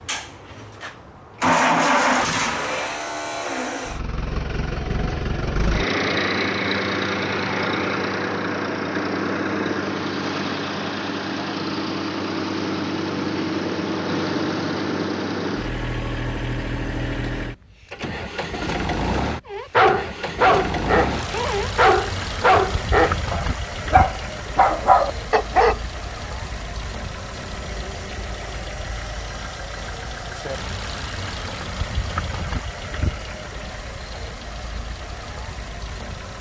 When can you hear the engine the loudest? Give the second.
2 s.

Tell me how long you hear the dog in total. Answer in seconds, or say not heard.
6 s.